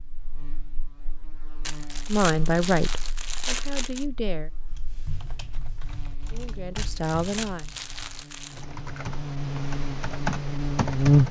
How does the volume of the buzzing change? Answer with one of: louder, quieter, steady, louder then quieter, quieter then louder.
quieter then louder.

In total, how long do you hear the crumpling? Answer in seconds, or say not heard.
4 s.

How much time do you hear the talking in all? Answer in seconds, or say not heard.
4 s.